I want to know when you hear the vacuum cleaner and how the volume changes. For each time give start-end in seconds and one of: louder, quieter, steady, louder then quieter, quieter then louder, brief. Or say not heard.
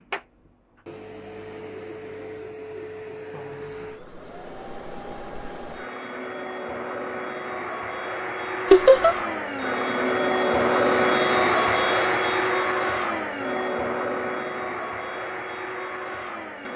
0.0-16.7 louder then quieter.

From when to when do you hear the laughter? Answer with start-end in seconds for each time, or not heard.
8.7-9.2.